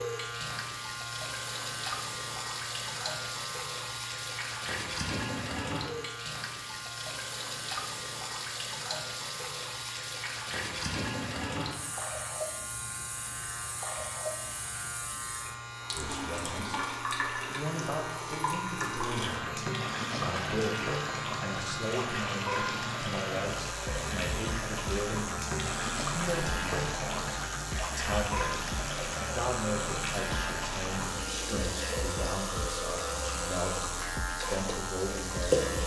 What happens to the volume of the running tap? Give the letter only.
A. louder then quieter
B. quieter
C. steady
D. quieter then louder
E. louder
C.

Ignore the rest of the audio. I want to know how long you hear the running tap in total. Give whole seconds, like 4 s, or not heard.
36 s.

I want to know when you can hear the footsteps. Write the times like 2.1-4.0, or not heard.
not heard.